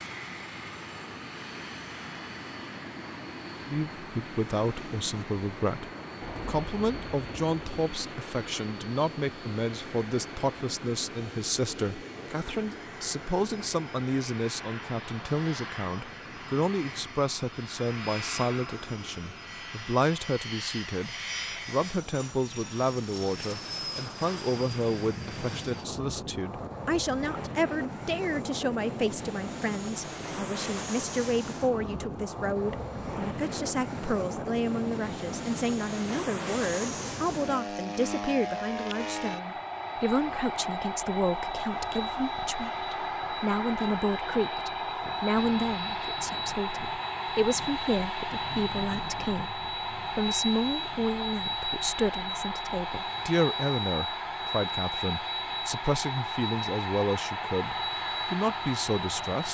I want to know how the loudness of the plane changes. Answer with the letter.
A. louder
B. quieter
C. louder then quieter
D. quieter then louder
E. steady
A.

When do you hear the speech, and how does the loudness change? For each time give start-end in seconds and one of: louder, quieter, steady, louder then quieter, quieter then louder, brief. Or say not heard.
3.6-59.5 steady.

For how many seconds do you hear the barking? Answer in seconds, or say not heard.
not heard.